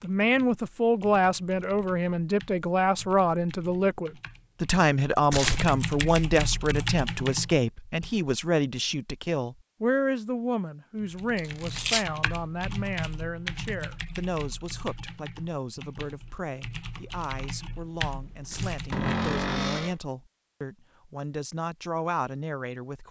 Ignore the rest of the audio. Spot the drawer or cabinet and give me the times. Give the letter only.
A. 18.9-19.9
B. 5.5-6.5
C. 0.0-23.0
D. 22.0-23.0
A.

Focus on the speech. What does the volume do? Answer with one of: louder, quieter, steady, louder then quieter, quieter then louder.
quieter.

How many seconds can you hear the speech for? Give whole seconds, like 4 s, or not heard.
23 s.